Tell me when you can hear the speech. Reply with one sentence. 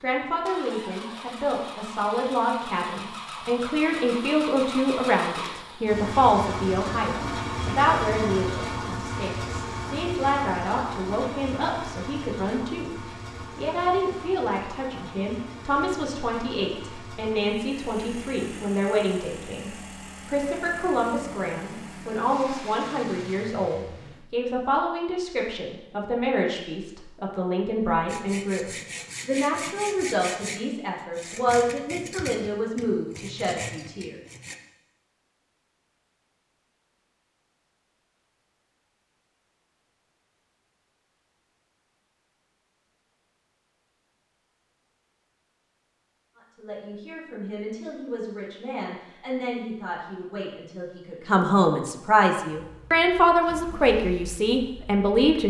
You can hear the speech from 0.0 to 34.2 s and from 46.4 to 55.4 s.